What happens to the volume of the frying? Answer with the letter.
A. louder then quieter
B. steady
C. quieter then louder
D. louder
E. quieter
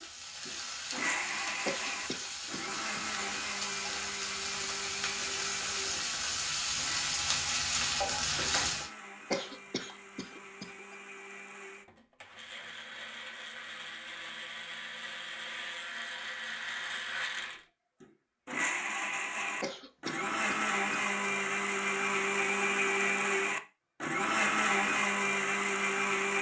D.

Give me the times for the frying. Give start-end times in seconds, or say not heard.
0.0-8.9.